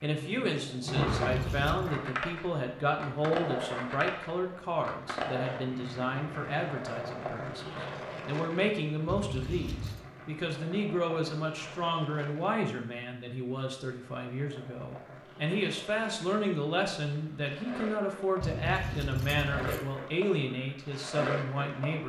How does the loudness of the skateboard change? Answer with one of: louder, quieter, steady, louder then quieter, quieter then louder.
quieter then louder.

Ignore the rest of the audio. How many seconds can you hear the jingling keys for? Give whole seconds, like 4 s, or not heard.
3 s.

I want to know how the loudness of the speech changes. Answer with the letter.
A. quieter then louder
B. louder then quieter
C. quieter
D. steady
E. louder
D.